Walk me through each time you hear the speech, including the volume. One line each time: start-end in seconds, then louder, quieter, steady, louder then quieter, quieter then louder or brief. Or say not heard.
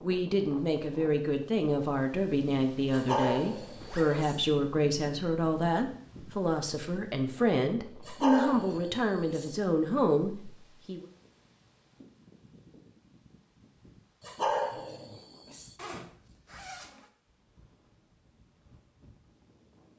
0.0-11.1 steady.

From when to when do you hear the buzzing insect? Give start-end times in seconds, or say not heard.
not heard.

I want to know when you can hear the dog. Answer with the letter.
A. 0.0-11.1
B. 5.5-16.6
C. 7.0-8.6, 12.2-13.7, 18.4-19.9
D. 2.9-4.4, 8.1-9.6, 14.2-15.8
D.